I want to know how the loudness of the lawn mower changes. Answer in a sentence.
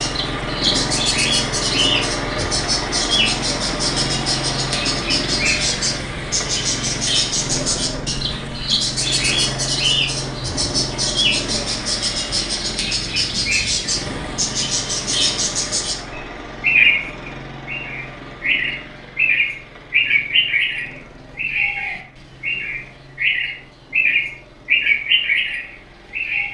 The volume of the lawn mower goes down.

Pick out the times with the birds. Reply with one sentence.
You can hear the birds from 0.0 to 26.5 s.